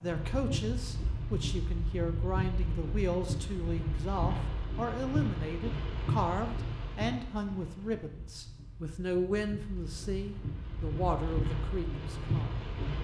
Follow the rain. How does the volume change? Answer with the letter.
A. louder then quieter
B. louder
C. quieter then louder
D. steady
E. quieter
C.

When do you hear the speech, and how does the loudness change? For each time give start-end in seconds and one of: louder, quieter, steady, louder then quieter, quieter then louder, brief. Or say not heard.
0.0-12.7 steady.